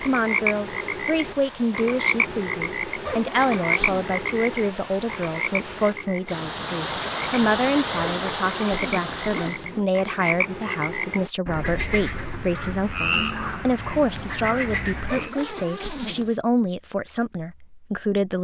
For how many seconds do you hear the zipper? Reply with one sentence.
You can hear the zipper for 4 seconds altogether.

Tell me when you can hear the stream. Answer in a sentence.
You can hear the stream from 0.0 to 9.7 s.